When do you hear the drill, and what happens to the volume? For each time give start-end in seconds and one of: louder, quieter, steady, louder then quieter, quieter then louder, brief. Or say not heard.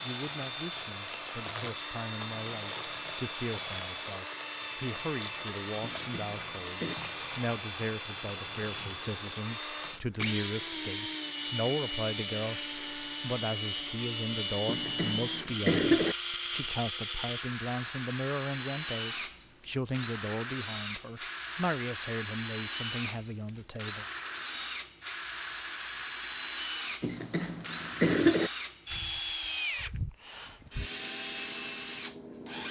0.0-32.6 steady.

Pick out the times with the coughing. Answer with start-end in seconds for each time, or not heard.
5.8-7.0, 14.7-16.1, 27.0-28.5.